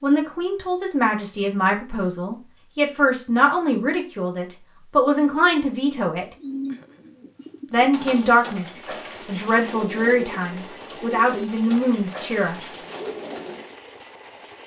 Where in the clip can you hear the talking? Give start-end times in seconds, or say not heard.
0.0-6.2, 7.7-8.7, 9.2-12.8.